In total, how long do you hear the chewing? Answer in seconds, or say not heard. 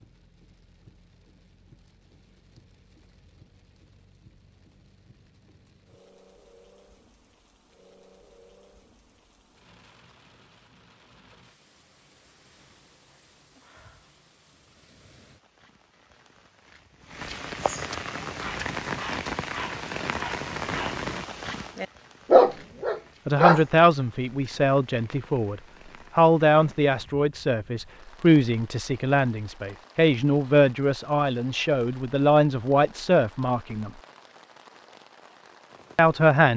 not heard.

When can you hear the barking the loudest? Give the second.
22 s.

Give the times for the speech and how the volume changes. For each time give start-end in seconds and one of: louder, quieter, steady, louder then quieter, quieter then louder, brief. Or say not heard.
23.2-33.9 steady
36.0-36.5 brief.